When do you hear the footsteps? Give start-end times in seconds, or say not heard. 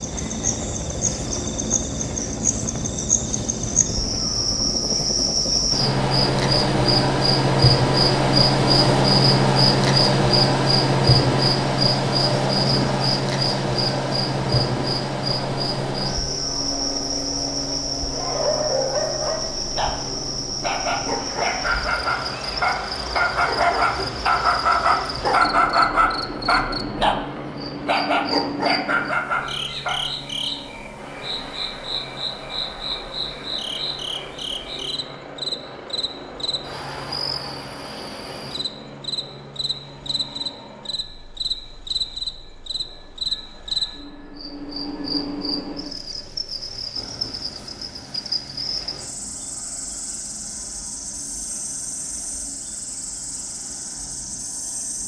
not heard.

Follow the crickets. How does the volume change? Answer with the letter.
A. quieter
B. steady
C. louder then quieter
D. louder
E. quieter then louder
A.